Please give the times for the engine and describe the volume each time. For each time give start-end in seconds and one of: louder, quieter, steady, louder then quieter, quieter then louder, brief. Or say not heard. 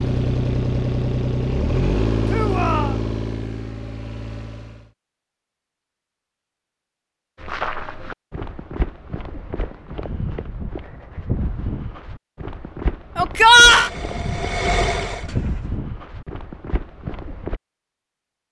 0.0-4.9 quieter
13.3-15.8 brief.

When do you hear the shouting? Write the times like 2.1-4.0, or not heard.
2.2-3.0, 13.2-13.9.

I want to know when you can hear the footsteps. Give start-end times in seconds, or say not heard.
7.3-17.6.